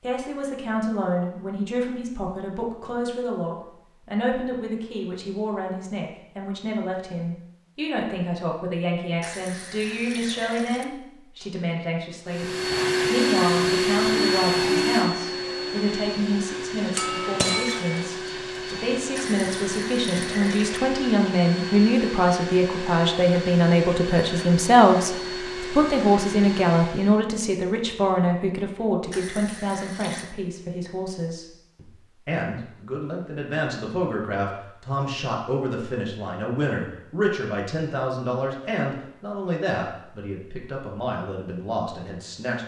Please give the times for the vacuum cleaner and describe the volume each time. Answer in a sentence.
The vacuum cleaner can be heard from 12.2 to 27.2 s, getting quieter.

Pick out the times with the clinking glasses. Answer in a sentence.
The clinking glasses can be heard from 16.9 to 18.1 s.